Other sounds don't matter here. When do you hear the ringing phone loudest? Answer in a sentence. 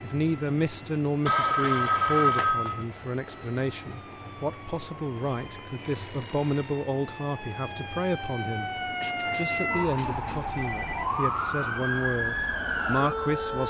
The volume of the ringing phone peaks at 2 seconds.